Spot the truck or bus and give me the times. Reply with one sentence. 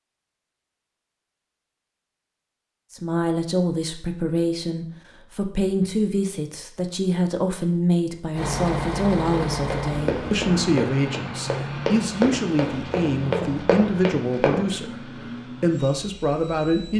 The truck or bus can be heard from 8.3 to 16.9 s.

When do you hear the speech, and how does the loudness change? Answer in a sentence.
You can hear the speech from 2.9 to 16.9 s, at a steady volume.